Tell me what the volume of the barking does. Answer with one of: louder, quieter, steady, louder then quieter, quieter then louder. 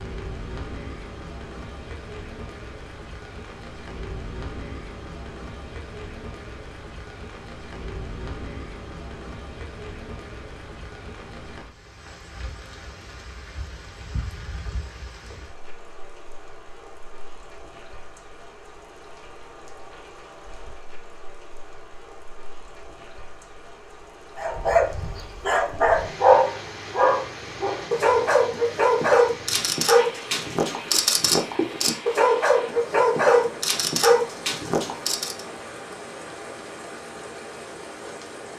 steady.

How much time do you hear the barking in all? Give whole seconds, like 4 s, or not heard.
11 s.